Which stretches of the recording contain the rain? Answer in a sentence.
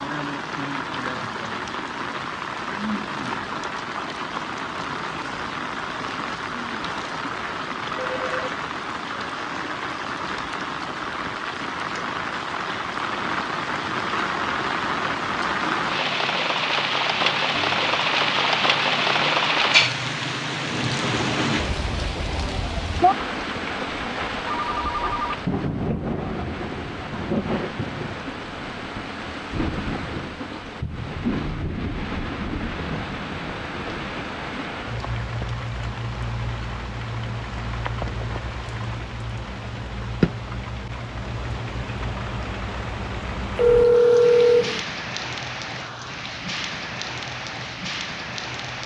The rain can be heard from 0.0 to 48.8 s.